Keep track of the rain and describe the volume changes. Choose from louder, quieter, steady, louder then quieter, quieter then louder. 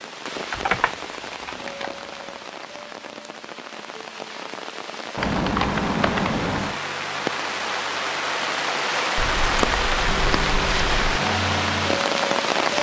louder.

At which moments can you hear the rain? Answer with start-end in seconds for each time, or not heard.
0.0-12.7.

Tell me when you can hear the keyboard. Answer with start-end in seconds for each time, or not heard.
0.3-2.3, 5.2-6.8, 9.2-11.2.